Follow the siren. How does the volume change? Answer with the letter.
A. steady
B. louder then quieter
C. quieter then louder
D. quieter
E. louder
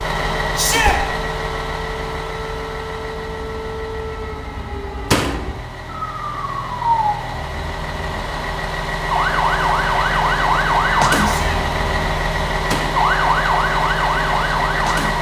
E.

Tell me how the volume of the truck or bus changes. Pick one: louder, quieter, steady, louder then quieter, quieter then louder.
quieter then louder.